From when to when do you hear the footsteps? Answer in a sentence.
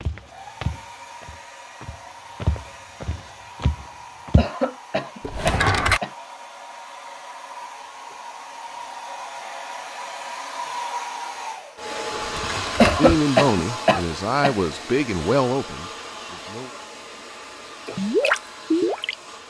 The footsteps can be heard from 0.0 to 4.5 s.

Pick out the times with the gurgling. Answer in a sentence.
You can hear the gurgling from 17.9 to 19.1 s.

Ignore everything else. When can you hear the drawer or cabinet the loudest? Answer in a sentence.
The volume of the drawer or cabinet peaks at 6 seconds.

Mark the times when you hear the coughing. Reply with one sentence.
You can hear the coughing from 4.3 to 6.1 s and from 12.8 to 14.6 s.